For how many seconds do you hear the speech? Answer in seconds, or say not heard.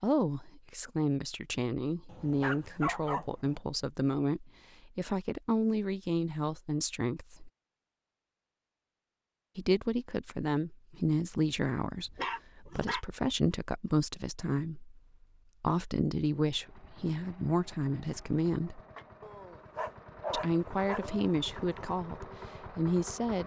19 s.